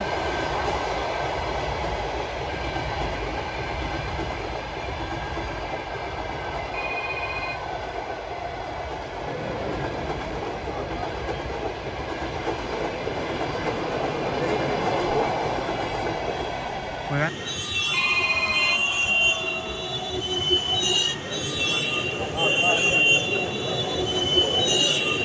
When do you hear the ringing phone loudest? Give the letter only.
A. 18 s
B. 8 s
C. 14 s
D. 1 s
A.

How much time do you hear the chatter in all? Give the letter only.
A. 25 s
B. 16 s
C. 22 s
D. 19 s
B.